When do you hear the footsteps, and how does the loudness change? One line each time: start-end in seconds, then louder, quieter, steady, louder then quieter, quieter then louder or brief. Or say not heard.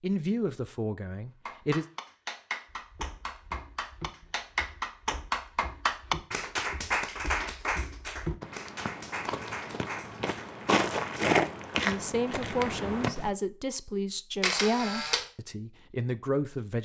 2.6-13.3 louder.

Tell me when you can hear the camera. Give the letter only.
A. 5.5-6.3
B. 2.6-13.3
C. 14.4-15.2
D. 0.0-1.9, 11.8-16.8
C.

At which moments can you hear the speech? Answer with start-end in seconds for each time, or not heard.
0.0-1.9, 11.8-16.8.